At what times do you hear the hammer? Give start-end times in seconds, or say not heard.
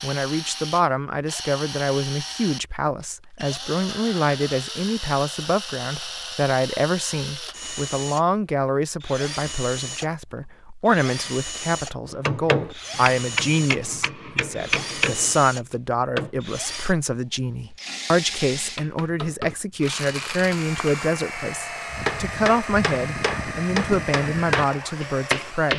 12.1-16.3, 21.9-25.7.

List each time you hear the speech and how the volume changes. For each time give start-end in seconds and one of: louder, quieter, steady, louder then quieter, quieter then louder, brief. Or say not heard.
0.0-25.7 steady.